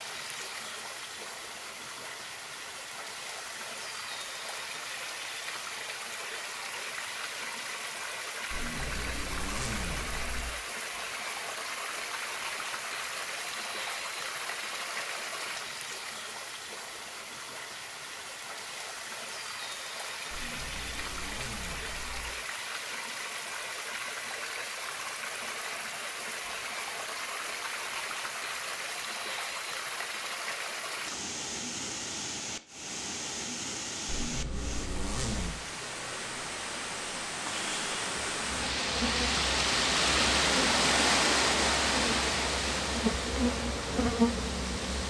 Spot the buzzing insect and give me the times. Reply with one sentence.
The buzzing insect can be heard from 38.4 to 45.0 s.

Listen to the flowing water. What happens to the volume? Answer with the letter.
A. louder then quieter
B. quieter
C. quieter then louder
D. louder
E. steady
D.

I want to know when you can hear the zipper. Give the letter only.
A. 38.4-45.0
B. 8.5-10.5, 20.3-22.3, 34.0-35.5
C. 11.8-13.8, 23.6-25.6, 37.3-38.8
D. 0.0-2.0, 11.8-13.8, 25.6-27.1
B.